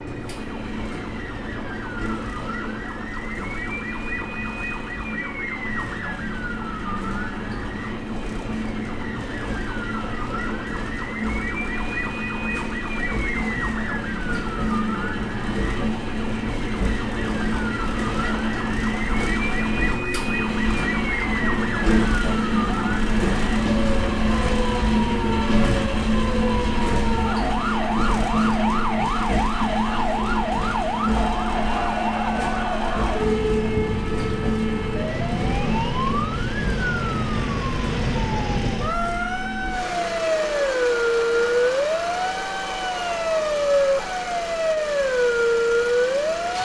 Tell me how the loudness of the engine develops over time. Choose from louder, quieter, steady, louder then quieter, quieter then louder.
louder then quieter.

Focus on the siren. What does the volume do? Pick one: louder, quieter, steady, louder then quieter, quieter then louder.
louder.